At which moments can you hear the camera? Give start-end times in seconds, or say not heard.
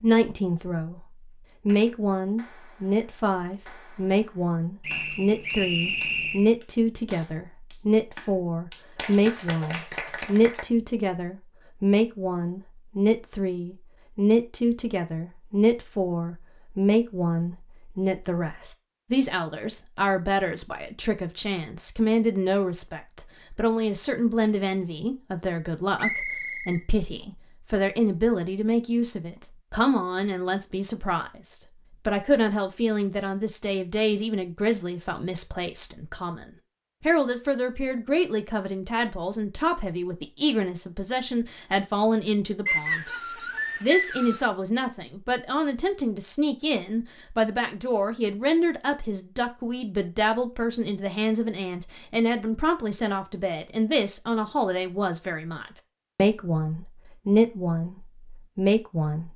not heard.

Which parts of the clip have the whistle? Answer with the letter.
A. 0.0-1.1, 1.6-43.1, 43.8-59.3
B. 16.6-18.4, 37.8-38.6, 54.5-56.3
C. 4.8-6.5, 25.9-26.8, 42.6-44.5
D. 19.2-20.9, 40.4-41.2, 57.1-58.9
C.